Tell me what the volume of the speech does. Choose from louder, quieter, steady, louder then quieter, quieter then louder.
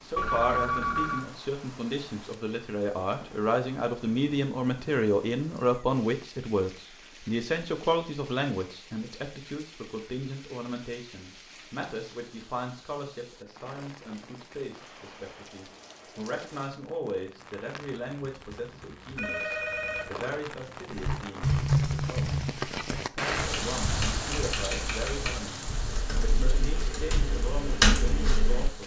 quieter.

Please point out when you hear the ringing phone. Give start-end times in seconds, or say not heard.
0.1-1.2, 17.8-20.4.